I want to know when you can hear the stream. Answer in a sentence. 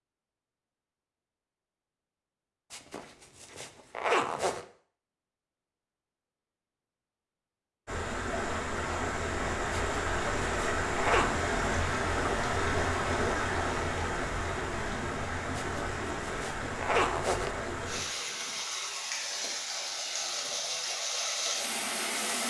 The stream can be heard from 7.8 to 22.4 s.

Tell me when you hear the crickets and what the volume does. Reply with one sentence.
The crickets can't be heard in this clip.